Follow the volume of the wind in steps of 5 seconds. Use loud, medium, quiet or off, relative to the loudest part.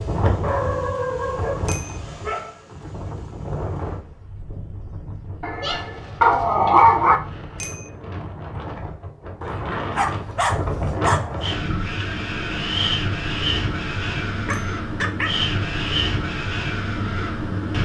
medium, medium, loud, loud.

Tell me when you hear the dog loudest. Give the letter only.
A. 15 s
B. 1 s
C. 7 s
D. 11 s
C.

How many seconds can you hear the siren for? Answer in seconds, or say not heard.
not heard.